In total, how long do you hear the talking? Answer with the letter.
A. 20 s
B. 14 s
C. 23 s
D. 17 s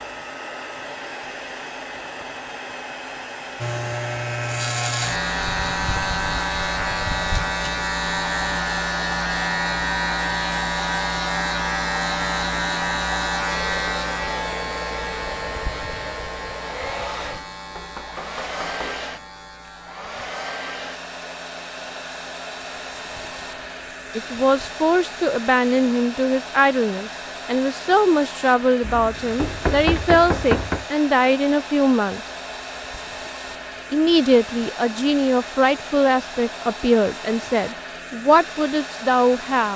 B.